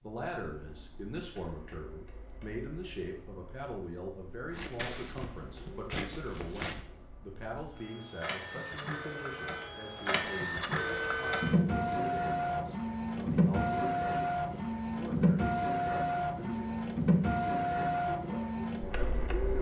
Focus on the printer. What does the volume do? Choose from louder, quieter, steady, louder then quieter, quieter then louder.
louder.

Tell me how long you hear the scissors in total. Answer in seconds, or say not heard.
2 s.